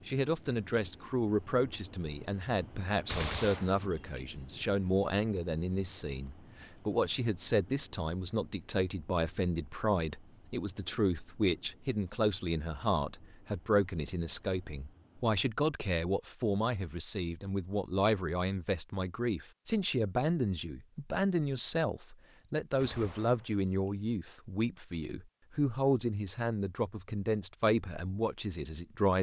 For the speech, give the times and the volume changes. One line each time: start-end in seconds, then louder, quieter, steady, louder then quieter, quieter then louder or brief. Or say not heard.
0.1-29.1 steady.